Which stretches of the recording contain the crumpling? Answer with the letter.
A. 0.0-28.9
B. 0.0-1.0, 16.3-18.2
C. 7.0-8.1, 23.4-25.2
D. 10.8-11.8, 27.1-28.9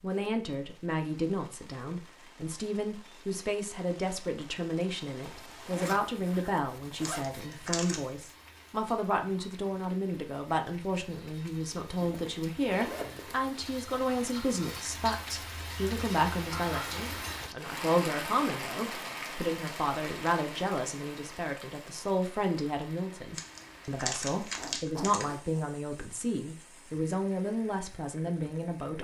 C.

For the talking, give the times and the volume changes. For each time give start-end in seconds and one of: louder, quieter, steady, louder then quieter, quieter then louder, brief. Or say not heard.
0.0-28.9 steady.